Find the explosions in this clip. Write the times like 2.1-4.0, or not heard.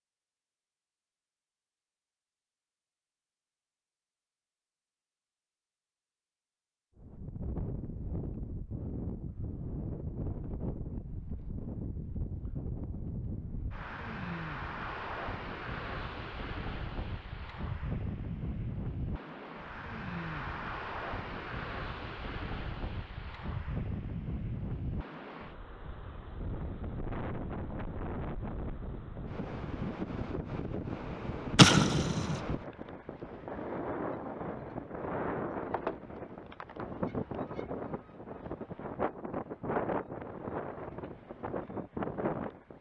31.6-32.4.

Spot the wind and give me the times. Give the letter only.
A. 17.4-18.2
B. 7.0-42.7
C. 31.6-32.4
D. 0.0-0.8
B.